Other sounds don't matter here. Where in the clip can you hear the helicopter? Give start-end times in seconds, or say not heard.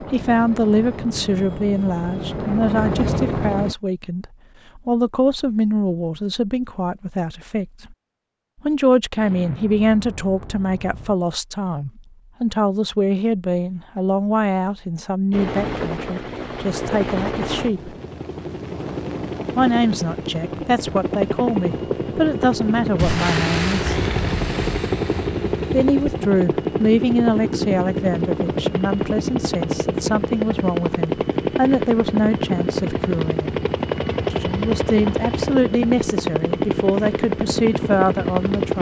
0.0-3.8, 15.3-38.7.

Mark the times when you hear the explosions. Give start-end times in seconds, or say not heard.
9.2-11.2, 22.9-26.2.